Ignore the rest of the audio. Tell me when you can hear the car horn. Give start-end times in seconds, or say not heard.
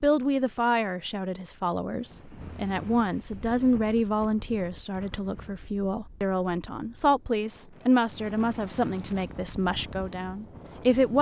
not heard.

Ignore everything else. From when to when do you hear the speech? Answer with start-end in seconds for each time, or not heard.
0.0-11.1.